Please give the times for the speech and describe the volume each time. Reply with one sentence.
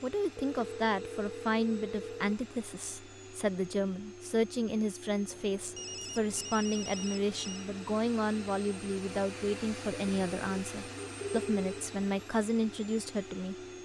The speech can be heard from 0.0 to 13.6 s, at a steady volume.